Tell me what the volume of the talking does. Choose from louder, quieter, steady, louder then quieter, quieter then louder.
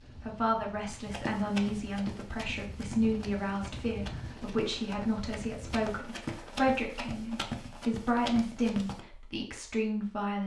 steady.